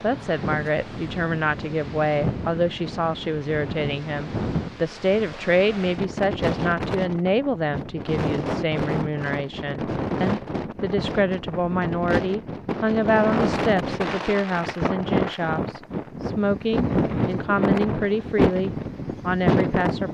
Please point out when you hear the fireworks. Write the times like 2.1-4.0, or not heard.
not heard.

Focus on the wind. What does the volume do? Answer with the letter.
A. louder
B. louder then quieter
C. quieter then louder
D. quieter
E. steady
A.